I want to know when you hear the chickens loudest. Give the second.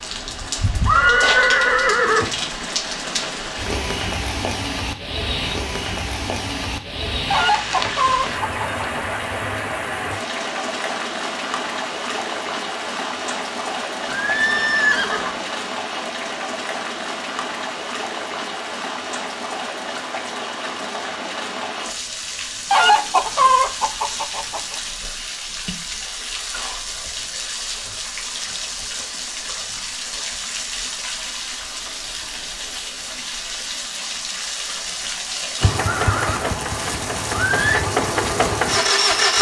23 s.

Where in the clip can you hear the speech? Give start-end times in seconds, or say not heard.
not heard.